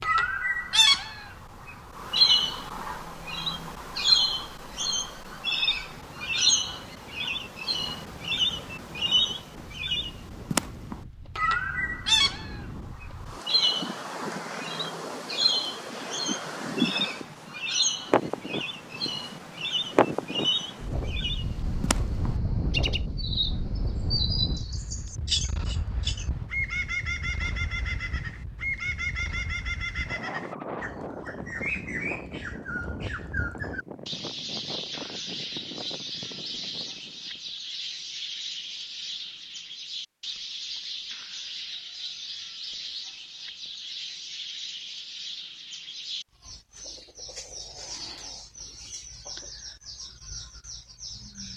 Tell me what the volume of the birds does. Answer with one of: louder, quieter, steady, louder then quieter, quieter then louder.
quieter.